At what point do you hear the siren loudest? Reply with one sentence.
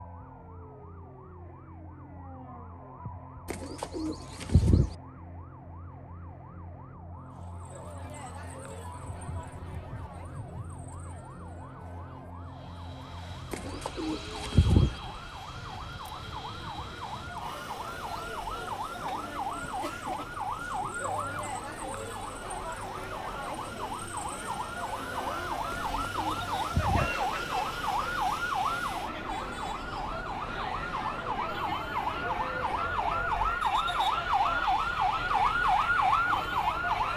The loudest moment of the siren is at 36 seconds.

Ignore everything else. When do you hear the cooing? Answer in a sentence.
The cooing can be heard from 3.5 to 5.0 s, from 13.5 to 14.9 s and from 25.7 to 27.1 s.